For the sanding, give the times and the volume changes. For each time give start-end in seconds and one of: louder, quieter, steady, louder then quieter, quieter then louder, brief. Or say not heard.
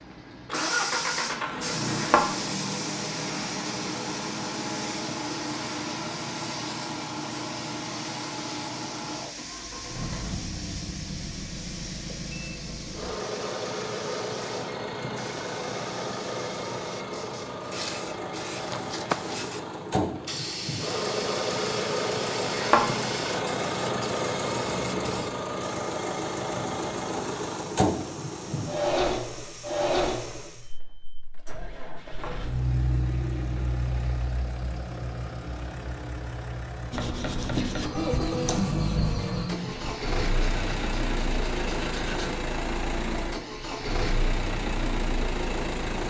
36.9-42.4 quieter.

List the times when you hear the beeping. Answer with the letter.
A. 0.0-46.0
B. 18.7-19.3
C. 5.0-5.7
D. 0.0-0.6
B.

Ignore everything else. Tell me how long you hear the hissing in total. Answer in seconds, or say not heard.
31 s.